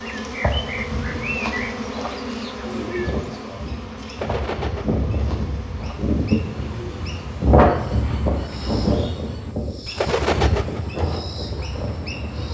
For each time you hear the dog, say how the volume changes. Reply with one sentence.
You can't hear the dog here.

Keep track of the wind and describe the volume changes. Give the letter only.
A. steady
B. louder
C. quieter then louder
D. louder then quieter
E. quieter
D.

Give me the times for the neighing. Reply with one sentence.
The neighing can't be heard in this clip.